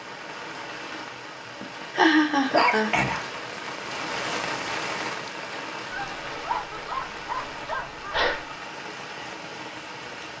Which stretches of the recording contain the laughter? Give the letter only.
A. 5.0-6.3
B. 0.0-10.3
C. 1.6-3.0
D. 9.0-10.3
C.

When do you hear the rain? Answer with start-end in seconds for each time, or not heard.
0.0-10.3.